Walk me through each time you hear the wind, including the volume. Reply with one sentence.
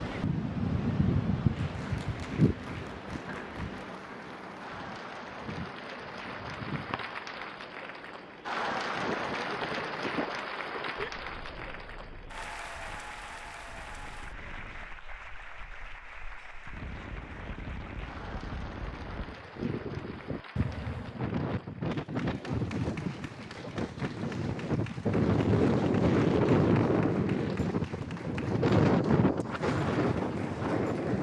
The wind can be heard from 0.0 to 31.1 s, getting quieter then louder.